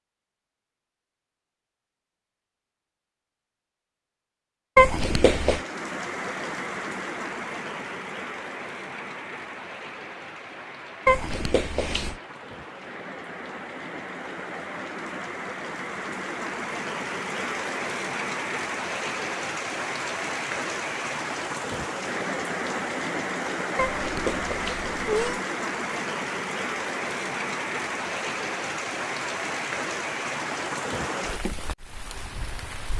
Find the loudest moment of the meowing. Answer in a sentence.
The loudest moment of the meowing is at 5 seconds.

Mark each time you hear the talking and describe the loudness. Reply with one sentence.
You can't hear the talking here.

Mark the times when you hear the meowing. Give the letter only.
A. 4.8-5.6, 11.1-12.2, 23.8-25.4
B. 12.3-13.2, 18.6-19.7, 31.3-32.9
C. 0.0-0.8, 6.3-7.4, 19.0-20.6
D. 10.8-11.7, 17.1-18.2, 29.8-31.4
A.